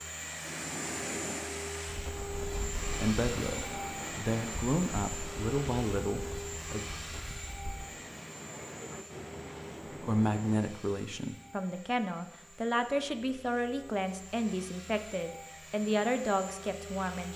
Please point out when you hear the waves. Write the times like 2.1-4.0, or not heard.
0.0-10.7.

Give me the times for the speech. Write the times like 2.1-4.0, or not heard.
3.0-6.8, 10.0-17.3.